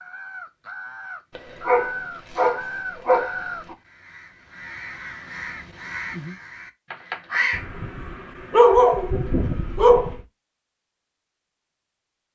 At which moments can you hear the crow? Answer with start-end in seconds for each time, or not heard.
0.0-7.7.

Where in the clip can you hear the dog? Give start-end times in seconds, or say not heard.
1.4-3.8, 7.5-10.2.